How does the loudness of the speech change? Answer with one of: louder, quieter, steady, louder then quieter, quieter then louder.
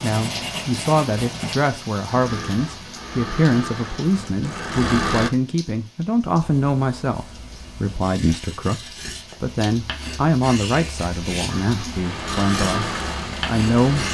steady.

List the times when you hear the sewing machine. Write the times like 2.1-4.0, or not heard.
2.0-5.3, 11.4-14.1.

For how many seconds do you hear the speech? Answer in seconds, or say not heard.
14 s.